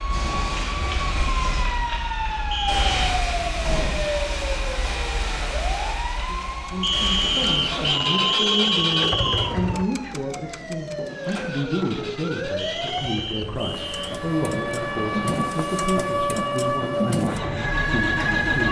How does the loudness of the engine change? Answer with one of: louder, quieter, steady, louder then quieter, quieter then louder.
quieter then louder.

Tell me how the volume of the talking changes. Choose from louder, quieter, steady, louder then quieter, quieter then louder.
steady.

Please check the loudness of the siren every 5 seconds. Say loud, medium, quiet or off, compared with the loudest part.
loud, medium, medium, loud.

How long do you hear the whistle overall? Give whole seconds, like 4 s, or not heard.
5 s.